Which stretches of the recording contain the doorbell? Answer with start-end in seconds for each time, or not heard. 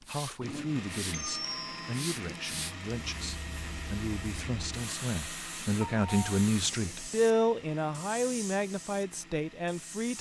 1.1-2.1, 5.8-6.4.